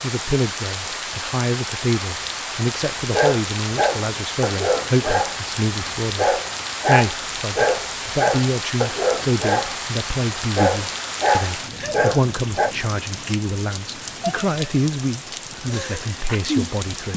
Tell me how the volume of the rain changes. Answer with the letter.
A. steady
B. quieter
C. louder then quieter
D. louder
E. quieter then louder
A.